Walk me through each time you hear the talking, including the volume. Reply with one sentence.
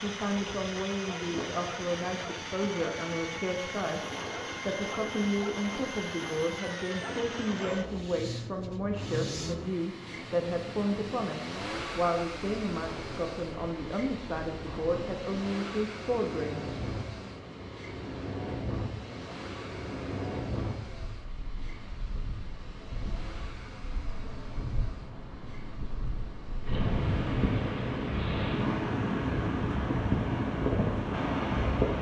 The talking can be heard from 0.0 to 4.0 s, at a steady volume; and from 4.7 to 17.3 s, at a steady volume.